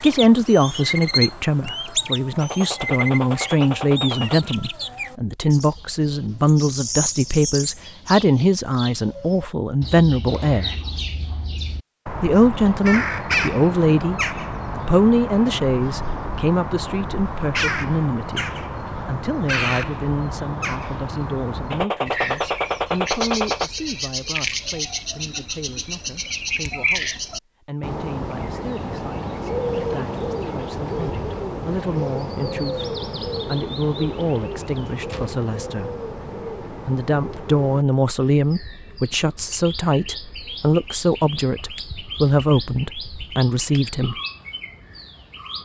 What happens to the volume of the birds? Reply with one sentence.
The volume of the birds goes down.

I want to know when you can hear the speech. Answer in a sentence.
The speech can be heard from 0.0 to 10.8 s, from 12.2 to 36.0 s and from 36.7 to 44.1 s.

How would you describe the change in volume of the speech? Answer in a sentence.
The volume of the speech goes down, then up.